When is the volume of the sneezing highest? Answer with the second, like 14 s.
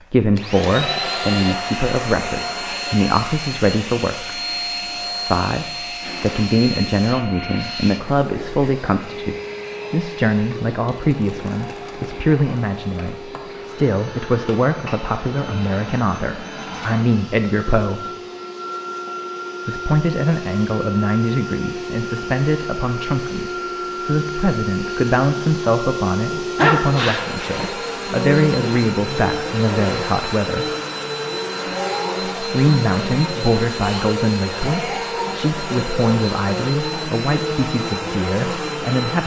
27 s.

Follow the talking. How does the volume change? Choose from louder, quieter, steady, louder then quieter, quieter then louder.
steady.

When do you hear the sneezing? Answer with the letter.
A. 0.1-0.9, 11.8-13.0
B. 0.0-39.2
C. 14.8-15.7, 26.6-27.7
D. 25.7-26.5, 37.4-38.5
C.